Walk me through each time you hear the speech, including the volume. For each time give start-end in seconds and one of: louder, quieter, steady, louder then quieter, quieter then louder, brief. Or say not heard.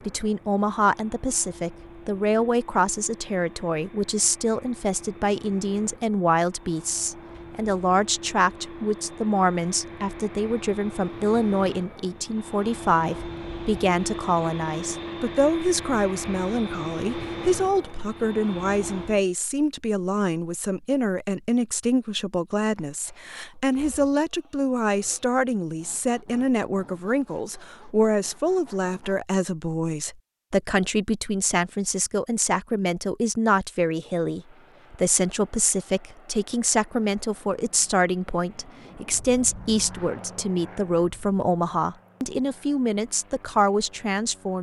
0.1-44.5 steady.